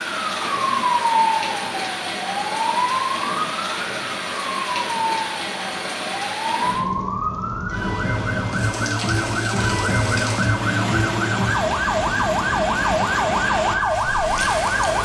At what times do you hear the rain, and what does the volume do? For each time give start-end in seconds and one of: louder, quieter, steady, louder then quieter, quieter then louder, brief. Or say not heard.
0.0-14.9 steady.